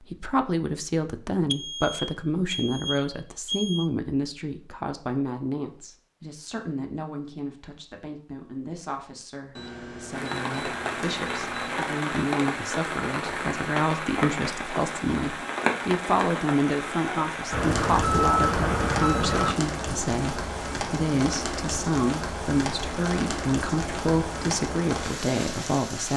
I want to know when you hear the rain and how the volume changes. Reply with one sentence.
You can hear the rain from 10.1 to 26.1 s, at a steady volume.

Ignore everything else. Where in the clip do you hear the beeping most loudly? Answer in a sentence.
The loudest moment of the beeping is at 18 seconds.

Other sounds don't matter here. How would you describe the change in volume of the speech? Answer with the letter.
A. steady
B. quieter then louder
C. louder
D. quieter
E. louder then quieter
B.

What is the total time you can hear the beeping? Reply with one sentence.
You can hear the beeping for 7 seconds altogether.